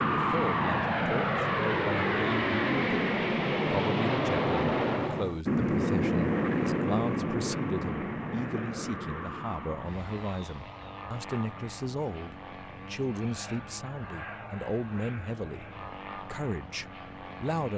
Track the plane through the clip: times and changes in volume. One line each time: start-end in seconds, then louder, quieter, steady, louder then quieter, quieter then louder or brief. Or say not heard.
0.0-17.7 quieter.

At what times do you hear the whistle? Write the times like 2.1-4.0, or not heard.
not heard.